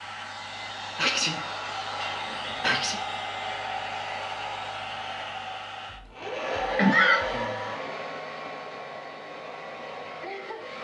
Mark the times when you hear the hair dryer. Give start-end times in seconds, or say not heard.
0.0-10.7.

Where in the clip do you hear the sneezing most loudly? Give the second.
7 s.